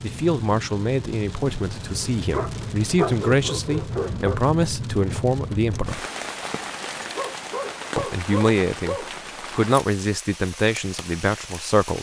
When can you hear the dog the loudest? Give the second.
3 s.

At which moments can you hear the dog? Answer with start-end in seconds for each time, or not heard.
2.3-4.4, 7.2-9.1.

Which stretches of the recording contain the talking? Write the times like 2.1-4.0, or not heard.
0.0-6.0, 8.0-11.9.